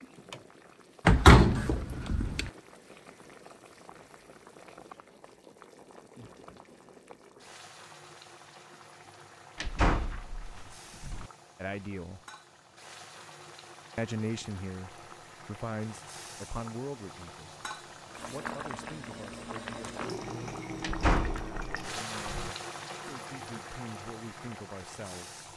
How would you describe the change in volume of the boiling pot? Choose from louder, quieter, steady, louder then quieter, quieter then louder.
louder.